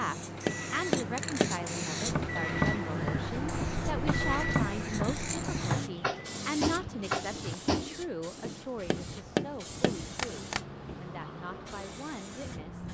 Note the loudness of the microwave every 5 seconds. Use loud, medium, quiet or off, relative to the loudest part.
loud, loud, off.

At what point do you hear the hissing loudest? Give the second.
2 s.